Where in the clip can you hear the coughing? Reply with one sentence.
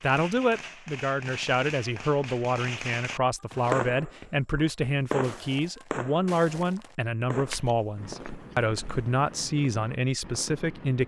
The coughing can't be heard in this clip.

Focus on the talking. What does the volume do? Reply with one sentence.
The loudness of the talking stays about the same.